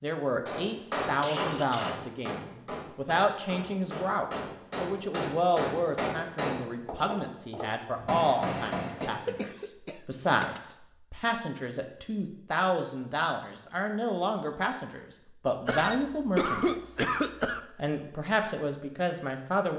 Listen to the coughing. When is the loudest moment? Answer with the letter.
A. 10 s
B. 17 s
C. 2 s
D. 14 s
B.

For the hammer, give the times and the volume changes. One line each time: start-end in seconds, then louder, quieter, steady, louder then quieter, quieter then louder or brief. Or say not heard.
0.5-9.3 quieter then louder.